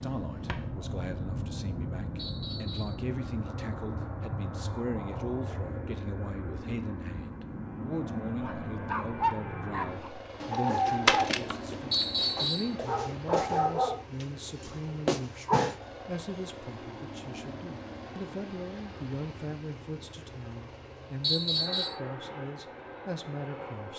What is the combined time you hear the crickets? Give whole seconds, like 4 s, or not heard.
not heard.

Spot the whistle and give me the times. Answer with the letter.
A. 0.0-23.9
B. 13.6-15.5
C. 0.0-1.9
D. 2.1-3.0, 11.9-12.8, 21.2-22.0
D.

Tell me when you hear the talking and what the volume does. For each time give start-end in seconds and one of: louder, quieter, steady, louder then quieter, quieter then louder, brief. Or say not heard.
0.0-23.9 steady.